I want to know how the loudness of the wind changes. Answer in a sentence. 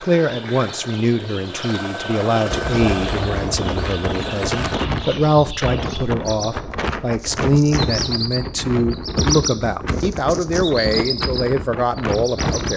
The volume of the wind stays about the same.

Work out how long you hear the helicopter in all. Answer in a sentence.
The helicopter can be heard for 5 seconds in total.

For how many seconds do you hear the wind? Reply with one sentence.
You can hear the wind for 10 seconds altogether.